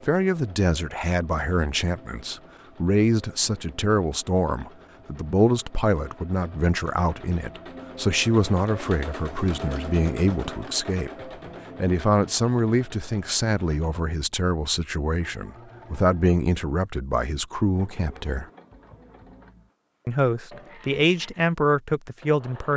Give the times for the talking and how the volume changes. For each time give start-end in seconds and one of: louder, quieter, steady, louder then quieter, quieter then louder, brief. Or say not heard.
0.1-18.4 steady
20.1-22.7 brief.